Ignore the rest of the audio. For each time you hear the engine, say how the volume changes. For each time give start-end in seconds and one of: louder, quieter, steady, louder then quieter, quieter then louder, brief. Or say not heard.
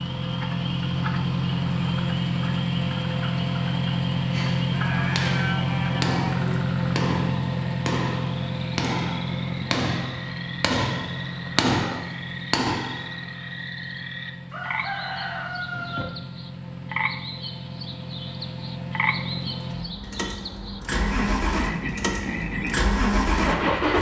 0.0-23.9 quieter then louder.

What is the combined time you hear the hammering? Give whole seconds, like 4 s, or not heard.
9 s.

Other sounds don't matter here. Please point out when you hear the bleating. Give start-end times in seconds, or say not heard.
4.7-6.7.